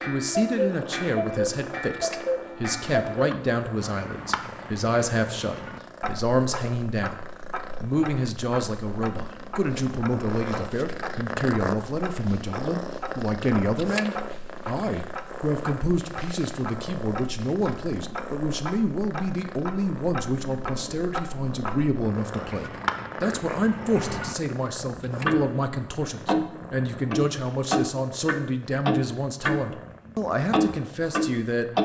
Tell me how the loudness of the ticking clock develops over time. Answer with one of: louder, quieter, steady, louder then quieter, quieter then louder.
quieter then louder.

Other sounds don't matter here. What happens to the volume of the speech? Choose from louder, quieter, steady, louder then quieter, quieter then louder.
steady.